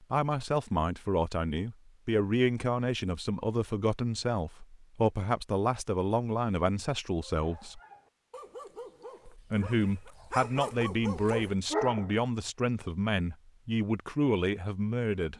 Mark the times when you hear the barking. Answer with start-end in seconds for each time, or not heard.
7.2-12.4.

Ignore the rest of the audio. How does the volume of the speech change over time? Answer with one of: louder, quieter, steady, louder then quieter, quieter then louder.
steady.